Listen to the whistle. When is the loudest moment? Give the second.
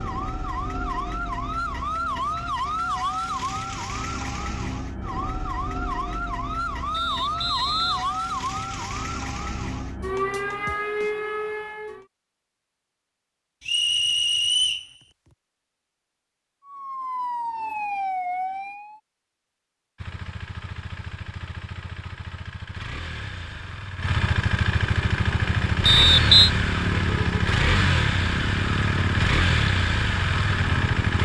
26 s.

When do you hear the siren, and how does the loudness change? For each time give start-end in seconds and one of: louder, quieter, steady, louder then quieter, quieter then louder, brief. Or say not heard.
0.0-12.1 steady
16.6-18.9 brief.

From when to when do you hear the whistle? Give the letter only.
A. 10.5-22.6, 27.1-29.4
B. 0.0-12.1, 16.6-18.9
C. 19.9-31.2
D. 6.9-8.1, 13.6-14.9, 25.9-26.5
D.